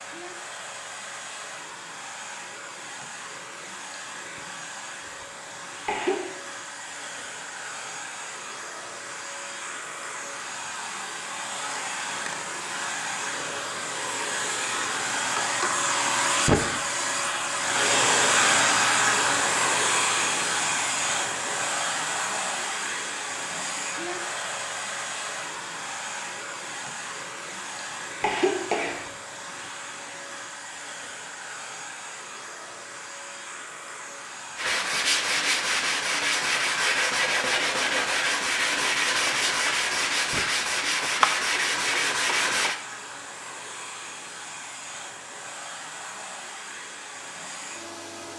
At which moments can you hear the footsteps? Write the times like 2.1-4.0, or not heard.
not heard.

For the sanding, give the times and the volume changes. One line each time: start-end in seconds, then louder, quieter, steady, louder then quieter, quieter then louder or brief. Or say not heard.
34.5-42.8 steady.